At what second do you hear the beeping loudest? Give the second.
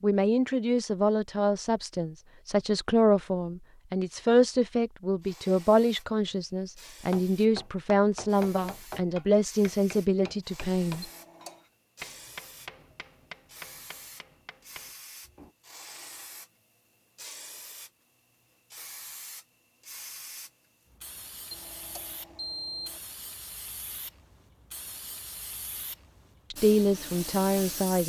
23 s.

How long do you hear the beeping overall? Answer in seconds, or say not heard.
2 s.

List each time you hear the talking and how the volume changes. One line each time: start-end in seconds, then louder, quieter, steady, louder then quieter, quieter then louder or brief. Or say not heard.
0.0-11.1 steady
26.5-28.0 brief.